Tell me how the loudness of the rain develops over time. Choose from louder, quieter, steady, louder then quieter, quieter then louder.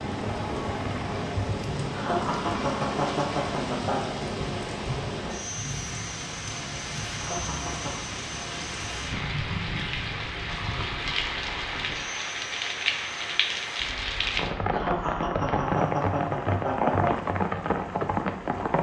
louder.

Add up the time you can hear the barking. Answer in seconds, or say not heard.
not heard.